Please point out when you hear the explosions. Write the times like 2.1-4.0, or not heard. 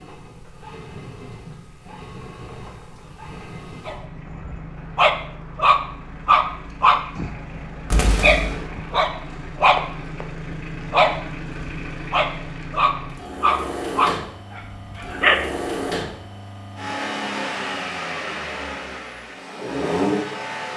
7.9-8.7.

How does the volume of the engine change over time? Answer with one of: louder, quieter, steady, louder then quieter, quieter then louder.
louder.